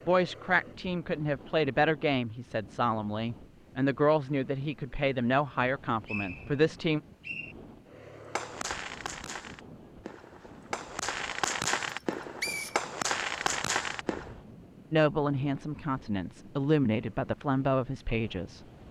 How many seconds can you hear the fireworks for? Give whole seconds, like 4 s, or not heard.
6 s.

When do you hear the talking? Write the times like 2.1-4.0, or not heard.
0.1-7.0, 14.9-18.6.